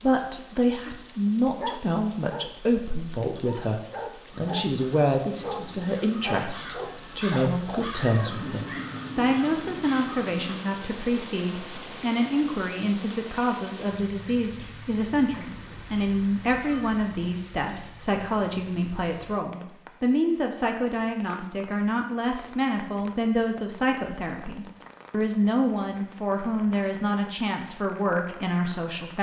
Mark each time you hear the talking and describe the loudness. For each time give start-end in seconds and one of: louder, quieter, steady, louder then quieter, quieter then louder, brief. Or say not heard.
0.0-29.1 steady.